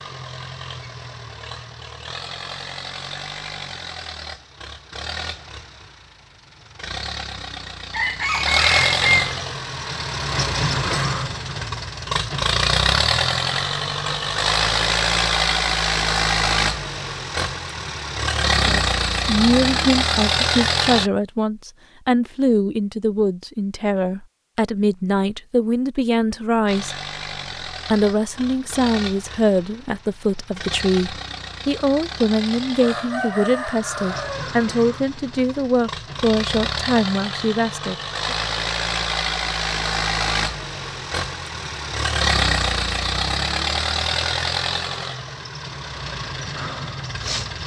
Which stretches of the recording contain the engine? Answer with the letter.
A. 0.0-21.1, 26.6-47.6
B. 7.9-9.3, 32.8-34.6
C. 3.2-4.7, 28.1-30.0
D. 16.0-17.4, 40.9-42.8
A.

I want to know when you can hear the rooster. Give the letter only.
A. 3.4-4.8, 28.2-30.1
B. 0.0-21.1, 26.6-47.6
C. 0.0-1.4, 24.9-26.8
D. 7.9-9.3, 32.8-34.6
D.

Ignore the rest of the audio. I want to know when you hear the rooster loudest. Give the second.
9 s.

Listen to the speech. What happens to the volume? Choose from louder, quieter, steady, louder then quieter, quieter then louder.
steady.